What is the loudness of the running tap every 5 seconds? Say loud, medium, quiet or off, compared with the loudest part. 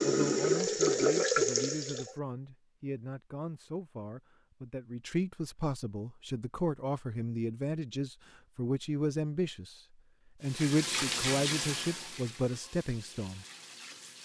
loud, off, medium.